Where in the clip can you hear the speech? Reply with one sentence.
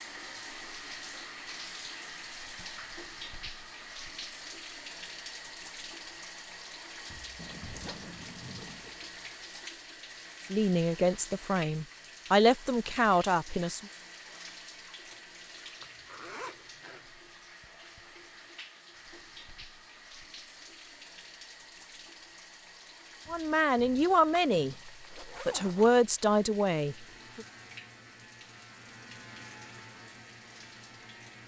The speech can be heard from 10.5 to 13.8 s and from 23.3 to 27.4 s.